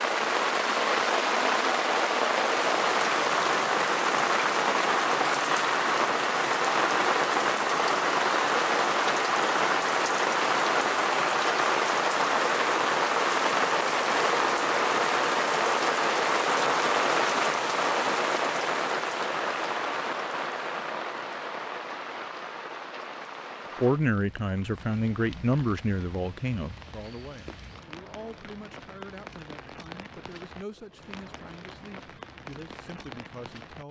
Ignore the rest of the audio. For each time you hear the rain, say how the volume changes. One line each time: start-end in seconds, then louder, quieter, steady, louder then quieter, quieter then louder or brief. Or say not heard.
0.0-33.8 quieter.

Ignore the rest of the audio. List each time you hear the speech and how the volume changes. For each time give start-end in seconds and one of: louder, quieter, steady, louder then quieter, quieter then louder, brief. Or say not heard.
23.8-33.8 quieter.